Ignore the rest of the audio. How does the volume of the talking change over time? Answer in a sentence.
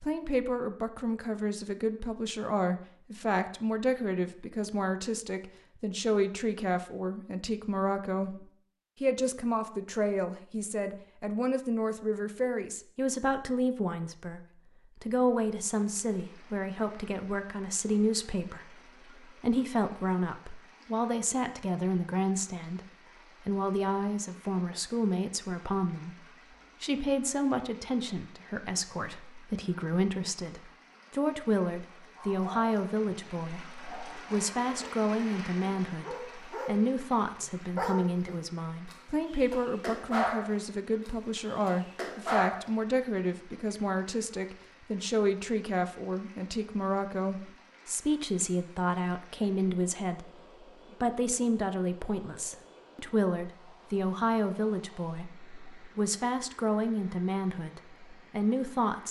The loudness of the talking stays about the same.